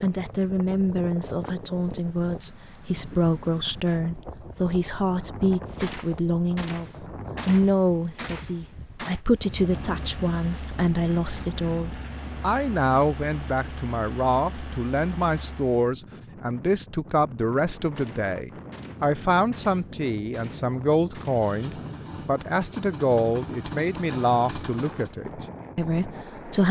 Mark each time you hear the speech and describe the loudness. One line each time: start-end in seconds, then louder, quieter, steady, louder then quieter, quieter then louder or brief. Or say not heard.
0.0-26.6 steady.